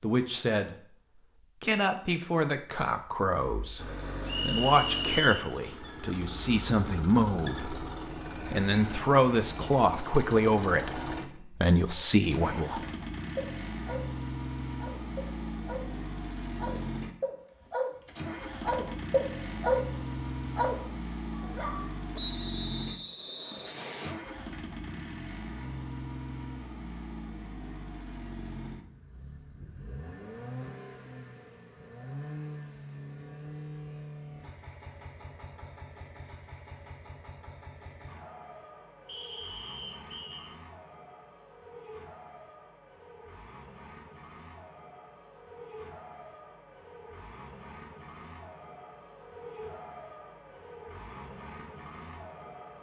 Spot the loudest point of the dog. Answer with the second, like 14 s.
20 s.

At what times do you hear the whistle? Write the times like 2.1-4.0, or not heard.
4.2-5.5, 22.1-24.1, 39.0-40.5.